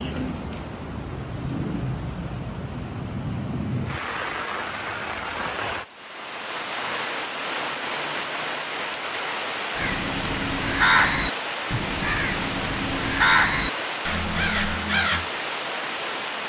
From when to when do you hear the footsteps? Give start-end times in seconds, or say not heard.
not heard.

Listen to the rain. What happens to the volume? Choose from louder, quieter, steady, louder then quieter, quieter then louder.
steady.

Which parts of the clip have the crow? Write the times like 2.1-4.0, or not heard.
9.8-15.2.